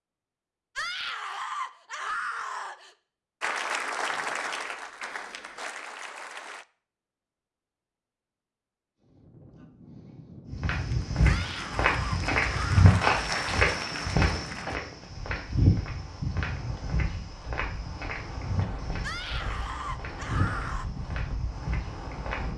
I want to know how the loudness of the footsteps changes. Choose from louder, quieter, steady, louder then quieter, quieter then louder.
quieter.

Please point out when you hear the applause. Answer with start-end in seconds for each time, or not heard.
3.4-6.7, 10.8-14.8.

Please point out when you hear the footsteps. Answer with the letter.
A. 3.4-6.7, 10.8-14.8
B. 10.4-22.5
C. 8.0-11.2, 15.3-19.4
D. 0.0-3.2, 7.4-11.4
B.